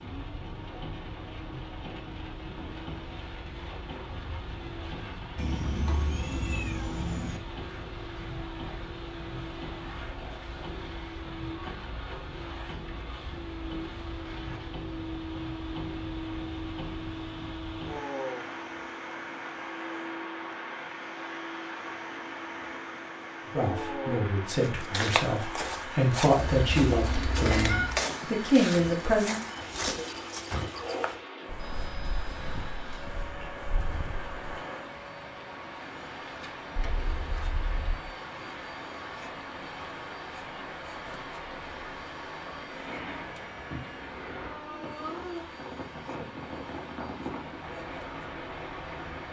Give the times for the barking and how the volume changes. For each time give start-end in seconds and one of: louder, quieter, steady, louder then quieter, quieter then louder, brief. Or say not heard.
not heard.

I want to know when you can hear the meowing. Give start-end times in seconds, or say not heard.
5.3-7.4, 26.4-28.1, 36.8-38.0.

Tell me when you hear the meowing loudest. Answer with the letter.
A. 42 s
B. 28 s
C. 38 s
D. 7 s
B.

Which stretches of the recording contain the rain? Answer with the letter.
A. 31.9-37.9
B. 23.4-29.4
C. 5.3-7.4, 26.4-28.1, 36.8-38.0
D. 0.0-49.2
D.